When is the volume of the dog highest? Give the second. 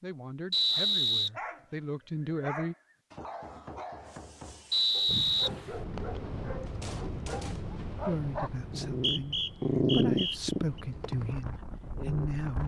10 s.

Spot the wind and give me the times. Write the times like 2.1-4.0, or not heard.
5.0-12.6.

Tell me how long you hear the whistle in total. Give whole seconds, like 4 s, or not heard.
4 s.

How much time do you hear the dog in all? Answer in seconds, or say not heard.
12 s.